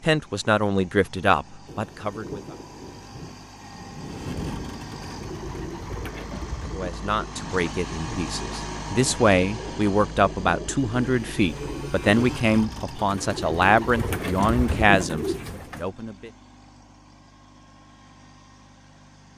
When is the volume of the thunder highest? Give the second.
4 s.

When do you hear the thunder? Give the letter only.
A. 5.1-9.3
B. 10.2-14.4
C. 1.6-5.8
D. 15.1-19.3
C.